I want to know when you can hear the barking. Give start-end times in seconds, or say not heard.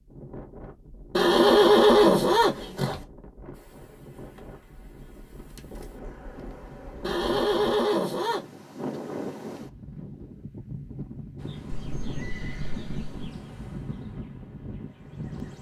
not heard.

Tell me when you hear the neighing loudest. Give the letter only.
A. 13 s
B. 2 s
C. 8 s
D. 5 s
B.